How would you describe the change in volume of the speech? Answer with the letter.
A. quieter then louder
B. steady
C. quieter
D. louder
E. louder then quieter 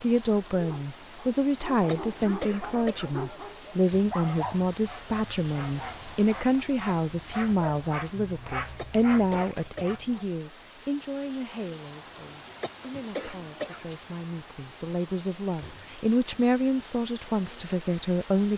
A.